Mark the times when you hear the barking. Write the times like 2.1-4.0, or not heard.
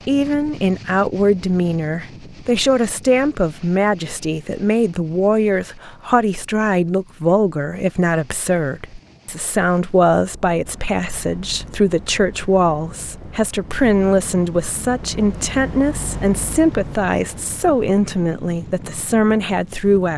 not heard.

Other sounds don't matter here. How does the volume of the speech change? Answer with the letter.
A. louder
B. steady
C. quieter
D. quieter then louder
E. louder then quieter
B.